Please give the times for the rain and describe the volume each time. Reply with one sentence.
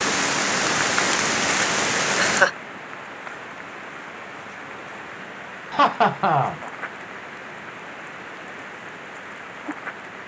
The rain can be heard from 0.0 to 10.2 s, getting quieter.